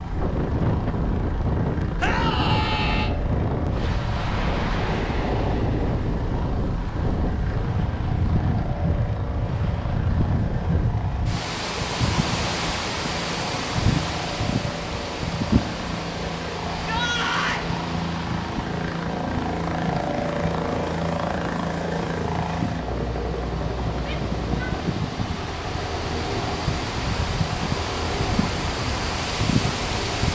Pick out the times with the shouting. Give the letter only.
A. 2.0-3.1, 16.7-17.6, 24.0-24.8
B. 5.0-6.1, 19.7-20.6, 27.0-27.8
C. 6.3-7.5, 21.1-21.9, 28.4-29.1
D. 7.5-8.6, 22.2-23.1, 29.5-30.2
A.